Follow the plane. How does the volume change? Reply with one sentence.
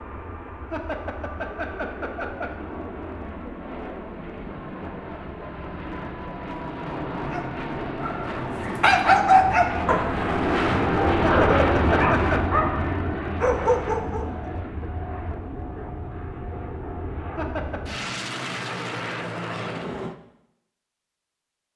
The loudness of the plane goes up, then down.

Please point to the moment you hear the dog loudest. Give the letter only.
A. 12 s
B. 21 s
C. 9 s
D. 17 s
C.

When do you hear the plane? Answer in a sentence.
You can hear the plane from 0.0 to 20.1 s.